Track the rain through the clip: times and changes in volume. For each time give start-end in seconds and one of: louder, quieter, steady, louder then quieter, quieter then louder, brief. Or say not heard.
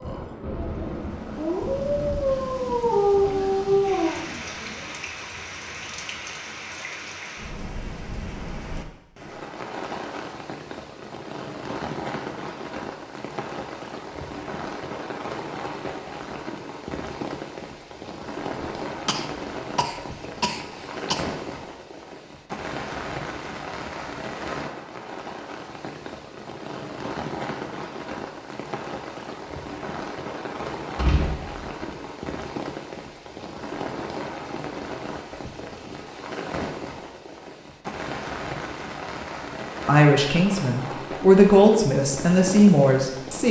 0.0-43.4 steady.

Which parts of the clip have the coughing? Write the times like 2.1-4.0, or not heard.
18.6-21.2.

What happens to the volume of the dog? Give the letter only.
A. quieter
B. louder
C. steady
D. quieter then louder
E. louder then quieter
B.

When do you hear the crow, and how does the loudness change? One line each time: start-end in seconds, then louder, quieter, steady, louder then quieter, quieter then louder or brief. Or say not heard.
not heard.